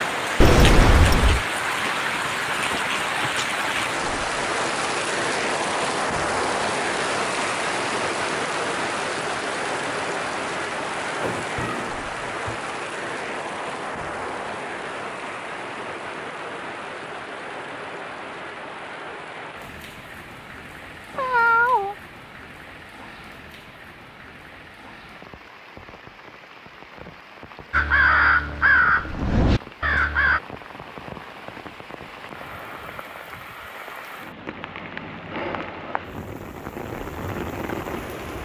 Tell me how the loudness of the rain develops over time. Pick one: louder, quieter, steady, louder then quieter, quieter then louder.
quieter then louder.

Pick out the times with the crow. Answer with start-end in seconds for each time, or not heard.
27.7-30.4.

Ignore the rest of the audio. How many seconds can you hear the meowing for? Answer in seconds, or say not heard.
2 s.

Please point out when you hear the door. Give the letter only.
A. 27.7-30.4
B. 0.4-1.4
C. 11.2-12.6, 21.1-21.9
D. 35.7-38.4
B.